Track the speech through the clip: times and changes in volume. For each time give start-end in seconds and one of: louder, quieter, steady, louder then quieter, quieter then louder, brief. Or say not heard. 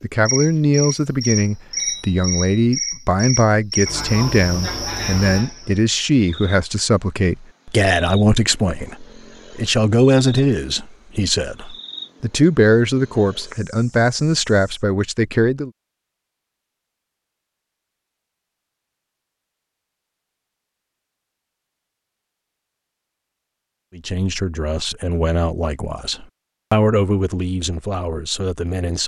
0.0-15.7 steady
23.9-29.0 louder then quieter.